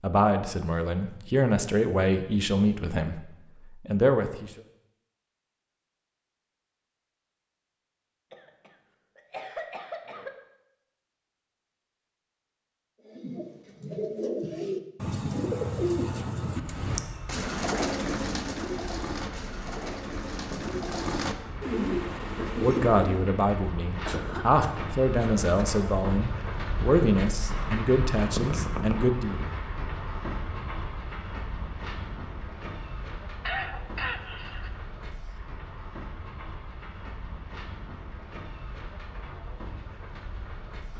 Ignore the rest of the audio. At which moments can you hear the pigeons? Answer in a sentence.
You can hear the pigeons from 13.1 to 23.4 s.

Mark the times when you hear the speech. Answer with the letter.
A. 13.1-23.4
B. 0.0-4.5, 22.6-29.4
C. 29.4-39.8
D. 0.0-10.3
B.